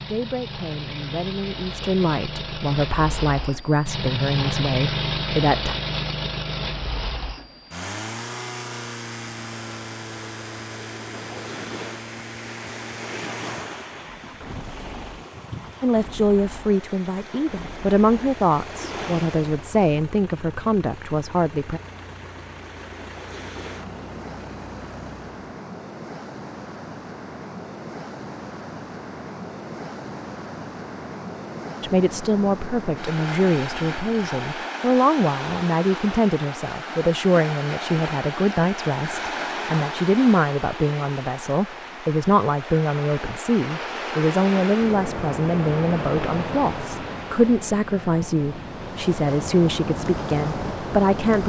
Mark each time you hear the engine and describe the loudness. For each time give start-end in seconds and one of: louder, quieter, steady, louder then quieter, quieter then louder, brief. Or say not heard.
0.0-25.4 quieter.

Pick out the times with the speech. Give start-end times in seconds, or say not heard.
0.1-5.8, 15.8-21.8, 31.8-51.4.